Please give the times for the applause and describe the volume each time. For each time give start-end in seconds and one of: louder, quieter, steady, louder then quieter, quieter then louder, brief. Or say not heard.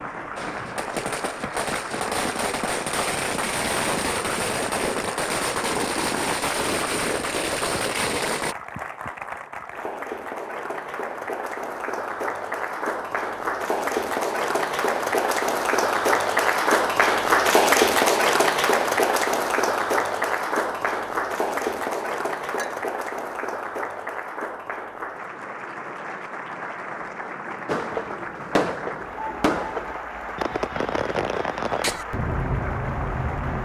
0.0-33.5 louder then quieter.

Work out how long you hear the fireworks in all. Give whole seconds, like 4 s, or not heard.
14 s.